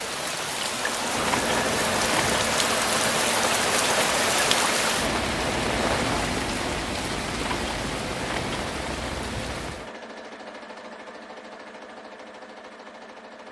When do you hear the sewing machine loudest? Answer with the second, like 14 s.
2 s.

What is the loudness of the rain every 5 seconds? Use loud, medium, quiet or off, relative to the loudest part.
loud, loud, off.